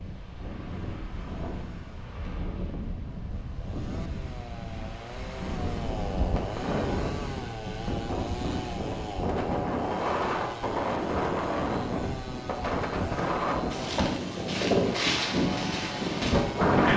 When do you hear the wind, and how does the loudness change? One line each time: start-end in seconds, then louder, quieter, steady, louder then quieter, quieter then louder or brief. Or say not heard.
0.0-16.9 louder.